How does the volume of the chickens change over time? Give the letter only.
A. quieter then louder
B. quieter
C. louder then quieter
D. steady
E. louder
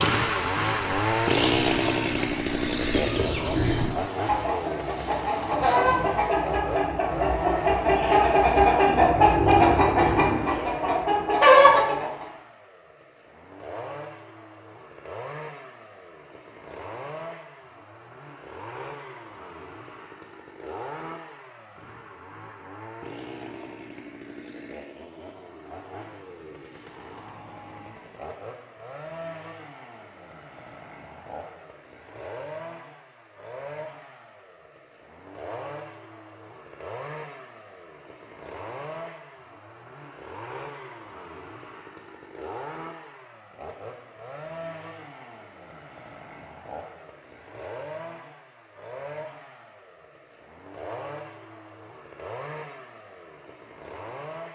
E.